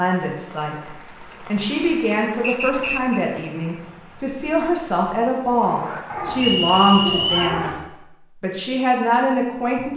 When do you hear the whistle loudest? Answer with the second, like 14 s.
7 s.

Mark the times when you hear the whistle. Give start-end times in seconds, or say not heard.
2.4-3.2, 6.3-7.6.